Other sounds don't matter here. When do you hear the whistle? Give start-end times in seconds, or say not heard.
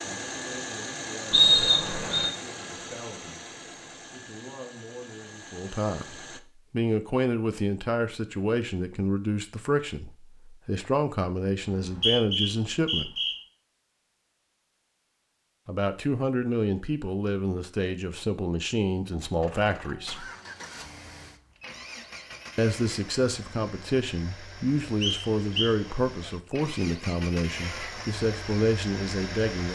1.3-2.3, 11.6-13.3, 25.0-25.8.